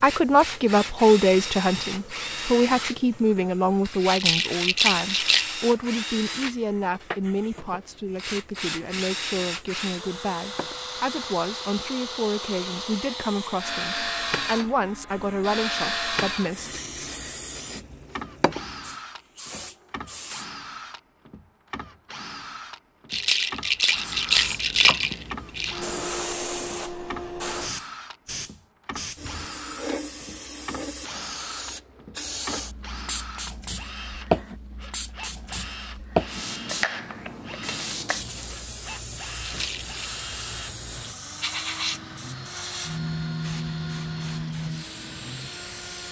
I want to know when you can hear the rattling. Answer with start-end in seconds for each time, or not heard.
4.0-5.5, 23.1-25.8, 39.4-40.0.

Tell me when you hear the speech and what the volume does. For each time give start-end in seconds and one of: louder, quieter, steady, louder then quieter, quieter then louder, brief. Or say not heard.
0.0-16.7 quieter.